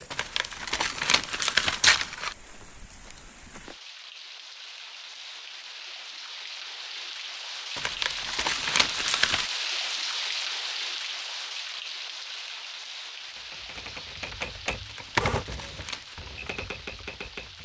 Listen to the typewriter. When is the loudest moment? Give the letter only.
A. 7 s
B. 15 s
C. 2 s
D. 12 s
B.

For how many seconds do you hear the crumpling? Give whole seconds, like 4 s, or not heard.
5 s.